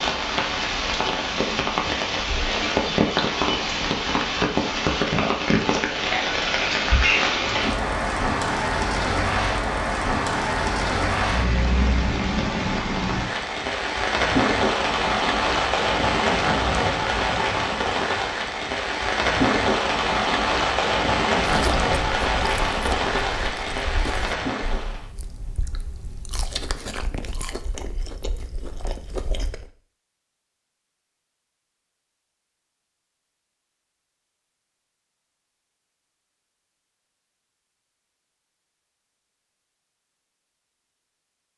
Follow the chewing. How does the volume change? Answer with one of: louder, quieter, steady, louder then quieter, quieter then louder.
quieter then louder.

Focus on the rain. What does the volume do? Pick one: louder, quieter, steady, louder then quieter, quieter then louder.
steady.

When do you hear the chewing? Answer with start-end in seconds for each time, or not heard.
21.4-29.7.